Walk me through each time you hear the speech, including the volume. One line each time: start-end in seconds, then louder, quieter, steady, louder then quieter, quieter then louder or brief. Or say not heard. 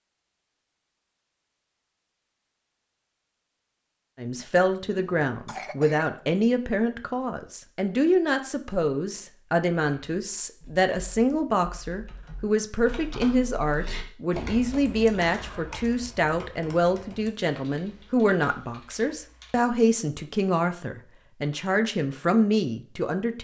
4.2-23.3 steady.